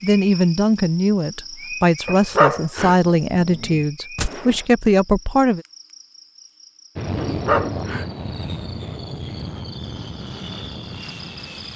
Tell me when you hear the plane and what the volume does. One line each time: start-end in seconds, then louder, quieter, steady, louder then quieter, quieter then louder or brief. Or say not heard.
7.0-11.7 quieter.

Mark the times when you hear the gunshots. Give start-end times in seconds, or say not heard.
4.2-4.7.